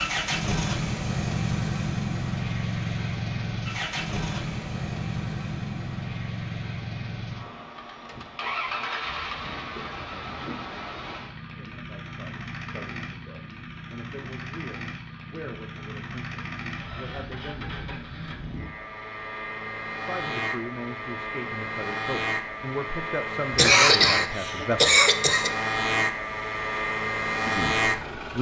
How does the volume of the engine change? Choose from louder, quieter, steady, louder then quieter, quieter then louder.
quieter then louder.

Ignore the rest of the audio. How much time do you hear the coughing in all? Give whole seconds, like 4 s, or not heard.
2 s.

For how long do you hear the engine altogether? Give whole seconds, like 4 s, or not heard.
28 s.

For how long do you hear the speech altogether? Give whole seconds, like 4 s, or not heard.
12 s.